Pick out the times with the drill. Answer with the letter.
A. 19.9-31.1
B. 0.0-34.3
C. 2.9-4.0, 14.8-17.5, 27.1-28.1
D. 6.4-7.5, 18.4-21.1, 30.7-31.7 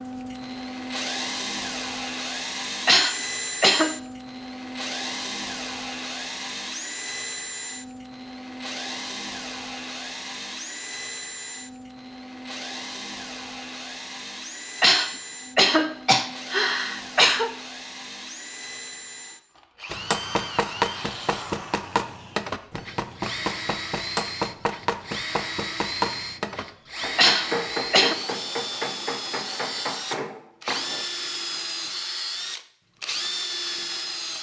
B.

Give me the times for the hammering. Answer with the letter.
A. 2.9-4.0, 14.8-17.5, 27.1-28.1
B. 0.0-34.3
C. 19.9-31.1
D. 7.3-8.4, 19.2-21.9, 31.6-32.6
C.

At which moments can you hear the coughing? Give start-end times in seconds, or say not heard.
2.9-4.0, 14.8-17.5, 27.1-28.1.